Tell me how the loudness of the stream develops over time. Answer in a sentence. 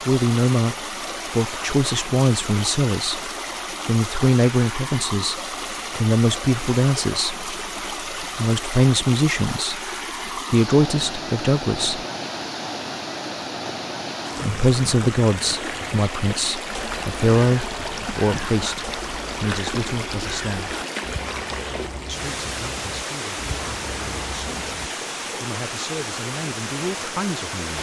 The volume of the stream stays about the same.